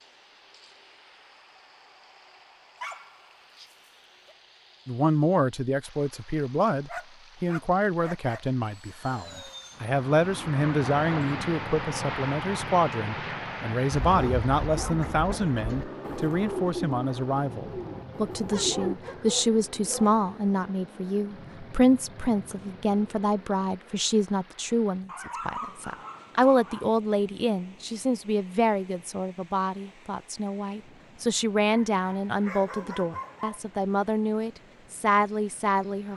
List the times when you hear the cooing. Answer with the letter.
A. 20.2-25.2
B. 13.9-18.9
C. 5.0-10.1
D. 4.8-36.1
B.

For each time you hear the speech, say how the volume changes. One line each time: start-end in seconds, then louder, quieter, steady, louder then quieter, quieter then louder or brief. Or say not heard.
4.8-36.1 steady.